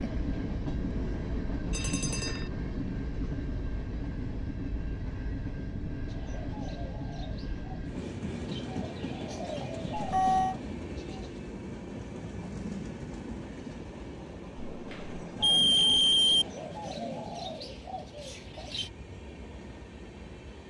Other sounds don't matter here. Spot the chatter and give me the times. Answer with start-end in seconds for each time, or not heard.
not heard.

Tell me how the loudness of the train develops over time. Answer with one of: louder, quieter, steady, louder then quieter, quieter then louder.
quieter.